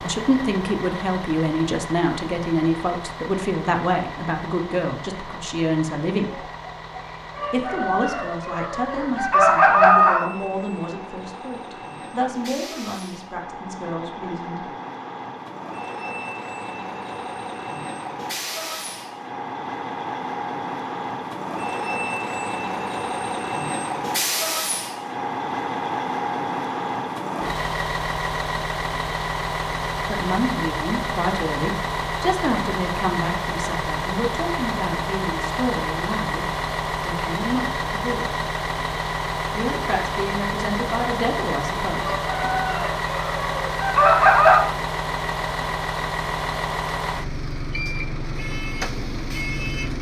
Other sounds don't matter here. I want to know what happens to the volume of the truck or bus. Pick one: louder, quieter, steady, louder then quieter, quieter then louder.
louder.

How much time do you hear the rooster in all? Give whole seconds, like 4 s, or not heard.
6 s.